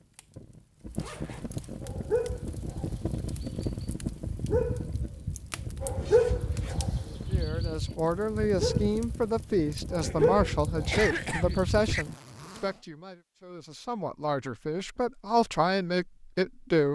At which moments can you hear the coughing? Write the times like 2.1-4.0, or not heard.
10.0-12.1.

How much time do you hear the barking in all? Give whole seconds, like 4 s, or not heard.
11 s.